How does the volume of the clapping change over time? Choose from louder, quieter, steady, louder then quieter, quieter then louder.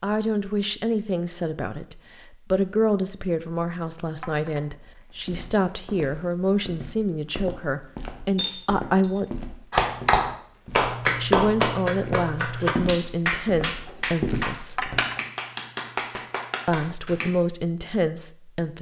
quieter.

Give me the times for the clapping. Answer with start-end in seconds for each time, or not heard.
9.7-17.3.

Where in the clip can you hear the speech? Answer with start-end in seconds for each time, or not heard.
0.0-9.2, 11.2-14.9, 16.6-18.7.